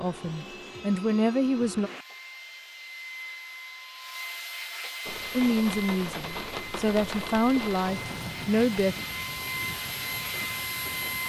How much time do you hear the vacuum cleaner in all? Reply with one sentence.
The vacuum cleaner can be heard for 11 seconds in total.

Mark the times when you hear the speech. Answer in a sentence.
You can hear the speech from 0.0 to 1.9 s and from 5.3 to 8.9 s.